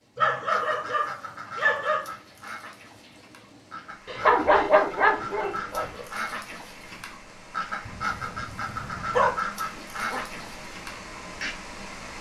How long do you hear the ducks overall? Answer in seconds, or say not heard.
11 s.